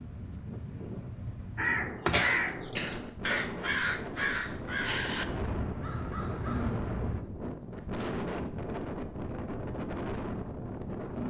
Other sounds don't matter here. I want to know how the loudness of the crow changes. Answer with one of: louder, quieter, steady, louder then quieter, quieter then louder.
quieter.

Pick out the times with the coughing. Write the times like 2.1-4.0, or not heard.
2.1-3.4.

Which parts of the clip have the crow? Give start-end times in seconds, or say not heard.
1.6-7.2.